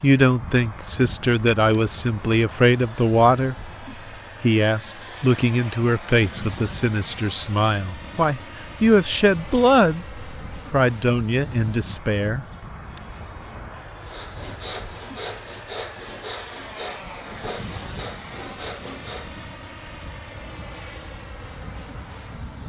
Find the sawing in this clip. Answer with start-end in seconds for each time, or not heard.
14.1-19.4.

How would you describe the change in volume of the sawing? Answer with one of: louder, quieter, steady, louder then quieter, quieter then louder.
steady.